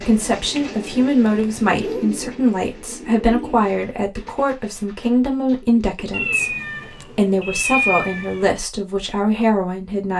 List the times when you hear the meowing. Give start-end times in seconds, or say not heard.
1.2-2.0, 6.1-8.4.